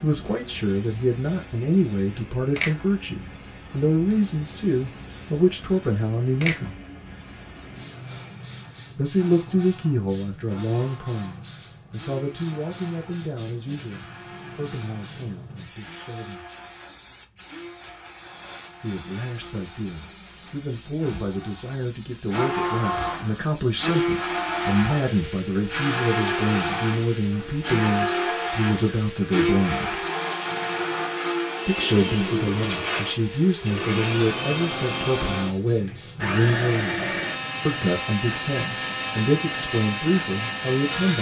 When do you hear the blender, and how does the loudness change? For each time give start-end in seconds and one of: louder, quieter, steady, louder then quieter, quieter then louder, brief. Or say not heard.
0.0-41.1 louder.